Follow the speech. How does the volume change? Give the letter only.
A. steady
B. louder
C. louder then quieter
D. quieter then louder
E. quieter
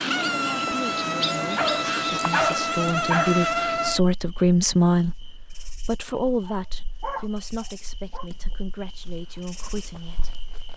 C.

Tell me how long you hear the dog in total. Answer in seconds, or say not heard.
4 s.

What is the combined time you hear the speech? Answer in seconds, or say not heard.
10 s.